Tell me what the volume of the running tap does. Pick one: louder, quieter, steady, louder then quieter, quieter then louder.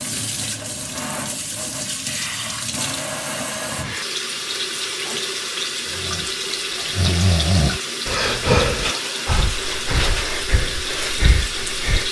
steady.